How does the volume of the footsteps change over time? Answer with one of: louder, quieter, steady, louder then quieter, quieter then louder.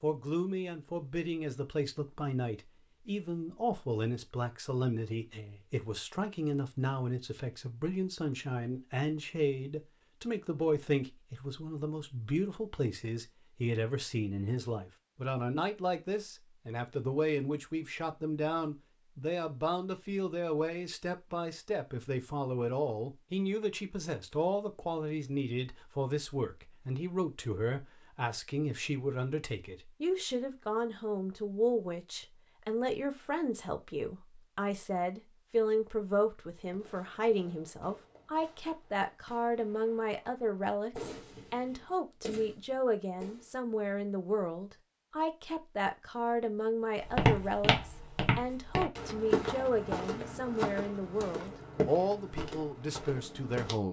quieter.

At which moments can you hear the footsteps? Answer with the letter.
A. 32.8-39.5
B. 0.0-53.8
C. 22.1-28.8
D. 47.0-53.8
D.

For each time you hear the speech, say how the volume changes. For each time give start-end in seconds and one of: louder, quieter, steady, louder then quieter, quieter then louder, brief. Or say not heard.
0.0-53.8 steady.